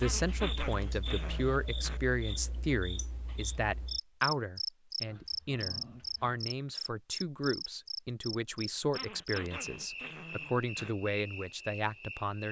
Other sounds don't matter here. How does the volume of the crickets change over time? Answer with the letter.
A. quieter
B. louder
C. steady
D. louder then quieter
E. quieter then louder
D.